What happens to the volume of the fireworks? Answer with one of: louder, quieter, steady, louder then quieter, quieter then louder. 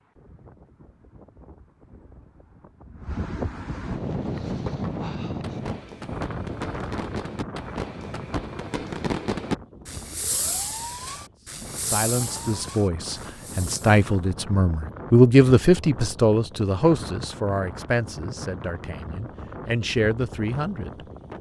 louder then quieter.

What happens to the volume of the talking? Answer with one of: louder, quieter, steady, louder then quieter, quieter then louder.
louder then quieter.